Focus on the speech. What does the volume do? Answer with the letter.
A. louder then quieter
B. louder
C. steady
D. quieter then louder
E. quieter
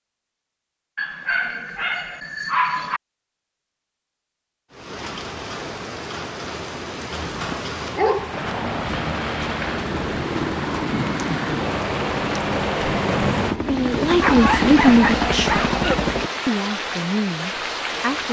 E.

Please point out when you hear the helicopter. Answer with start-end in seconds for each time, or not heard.
8.3-16.3.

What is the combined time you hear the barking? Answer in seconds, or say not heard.
5 s.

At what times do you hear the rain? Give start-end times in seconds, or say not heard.
4.7-18.2.